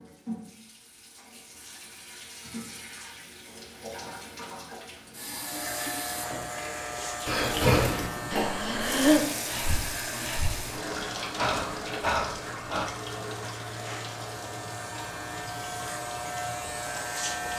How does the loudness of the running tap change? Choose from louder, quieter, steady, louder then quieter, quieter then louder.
louder then quieter.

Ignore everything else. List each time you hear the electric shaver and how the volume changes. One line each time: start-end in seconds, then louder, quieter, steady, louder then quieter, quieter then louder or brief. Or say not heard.
5.3-17.5 quieter then louder.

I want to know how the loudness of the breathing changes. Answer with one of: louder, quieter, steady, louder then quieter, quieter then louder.
quieter then louder.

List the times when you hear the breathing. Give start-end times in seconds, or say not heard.
7.2-12.8.